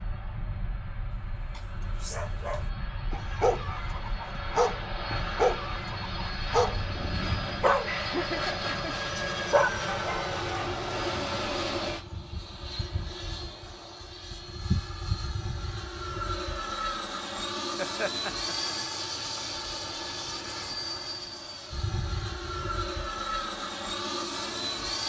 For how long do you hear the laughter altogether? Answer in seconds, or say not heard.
2 s.